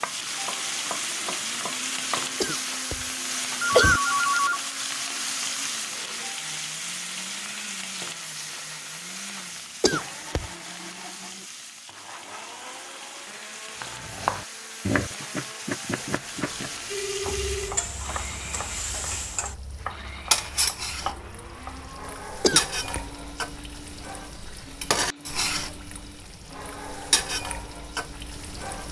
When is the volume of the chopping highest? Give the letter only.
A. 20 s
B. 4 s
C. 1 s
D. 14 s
D.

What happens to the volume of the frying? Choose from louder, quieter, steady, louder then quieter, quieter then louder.
quieter then louder.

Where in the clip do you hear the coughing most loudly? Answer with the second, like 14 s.
4 s.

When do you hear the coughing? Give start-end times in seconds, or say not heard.
2.4-3.0, 3.8-4.4, 9.8-10.5, 22.4-23.0.